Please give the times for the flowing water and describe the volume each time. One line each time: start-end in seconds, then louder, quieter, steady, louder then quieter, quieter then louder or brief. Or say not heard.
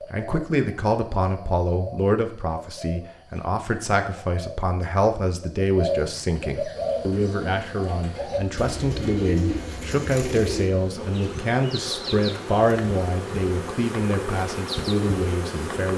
not heard.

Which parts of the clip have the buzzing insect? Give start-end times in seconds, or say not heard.
6.7-15.9.